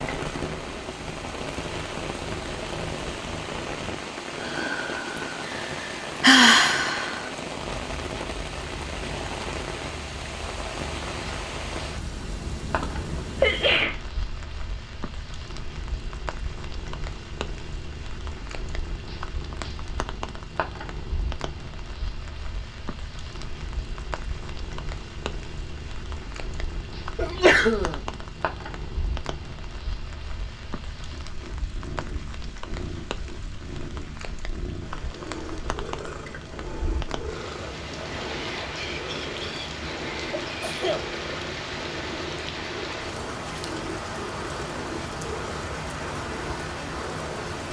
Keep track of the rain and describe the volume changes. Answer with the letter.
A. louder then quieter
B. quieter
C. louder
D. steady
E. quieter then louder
E.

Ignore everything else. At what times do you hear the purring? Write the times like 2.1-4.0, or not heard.
0.0-47.6.